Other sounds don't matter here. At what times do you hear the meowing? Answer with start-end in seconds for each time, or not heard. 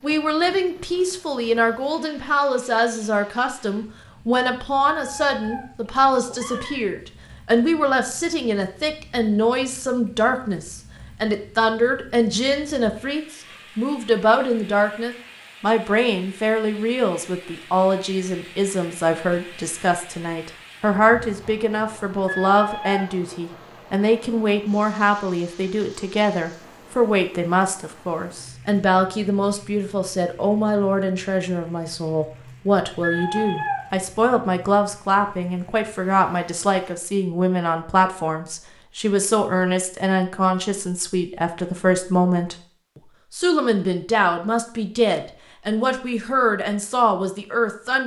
4.9-6.8, 22.2-23.1, 33.0-33.8.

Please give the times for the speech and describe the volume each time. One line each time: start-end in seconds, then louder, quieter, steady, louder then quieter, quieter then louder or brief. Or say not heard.
0.0-42.5 steady
43.3-48.0 steady.